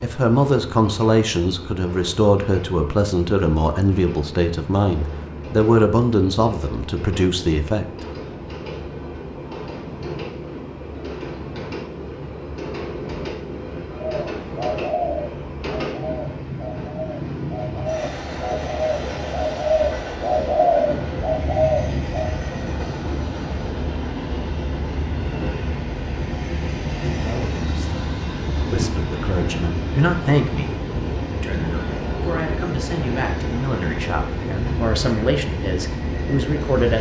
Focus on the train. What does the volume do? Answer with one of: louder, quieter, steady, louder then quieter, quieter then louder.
louder.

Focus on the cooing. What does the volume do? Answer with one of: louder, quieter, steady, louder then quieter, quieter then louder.
quieter then louder.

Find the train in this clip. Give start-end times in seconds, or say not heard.
0.0-36.9.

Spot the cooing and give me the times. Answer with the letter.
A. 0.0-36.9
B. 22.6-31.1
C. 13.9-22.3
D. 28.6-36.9
C.